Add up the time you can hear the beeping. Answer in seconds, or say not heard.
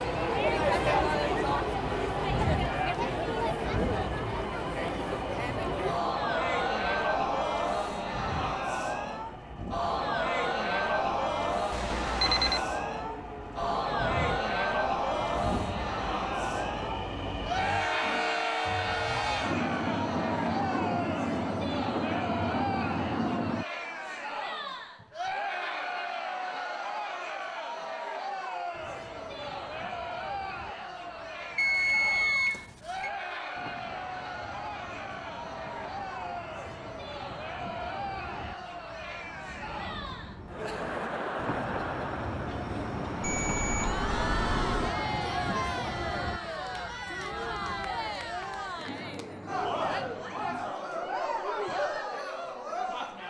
4 s.